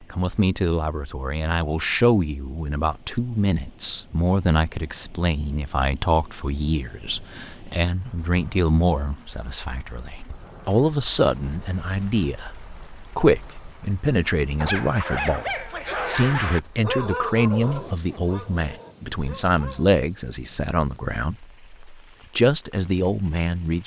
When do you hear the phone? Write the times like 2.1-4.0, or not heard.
not heard.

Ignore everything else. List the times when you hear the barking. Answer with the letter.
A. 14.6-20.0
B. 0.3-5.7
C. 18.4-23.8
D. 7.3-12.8
A.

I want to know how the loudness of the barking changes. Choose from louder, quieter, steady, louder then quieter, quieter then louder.
quieter.